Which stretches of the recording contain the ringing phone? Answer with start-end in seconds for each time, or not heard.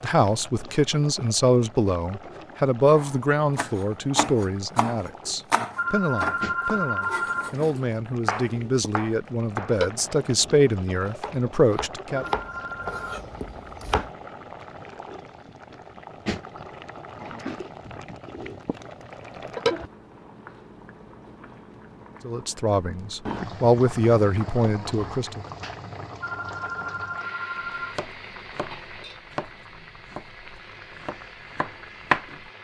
5.8-7.5, 12.3-13.2, 26.2-27.9.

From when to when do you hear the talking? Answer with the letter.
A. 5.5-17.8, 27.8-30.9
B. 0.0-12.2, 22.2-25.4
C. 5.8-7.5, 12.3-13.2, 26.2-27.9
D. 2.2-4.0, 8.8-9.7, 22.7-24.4
B.